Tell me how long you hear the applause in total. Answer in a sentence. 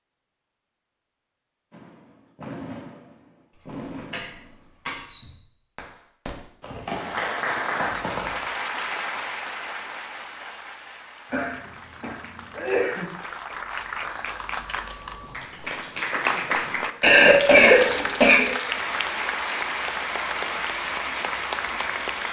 You can hear the applause for 15 seconds altogether.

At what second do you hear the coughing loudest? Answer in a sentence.
The volume of the coughing peaks at 18 seconds.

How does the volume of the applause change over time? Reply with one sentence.
The volume of the applause goes down, then up.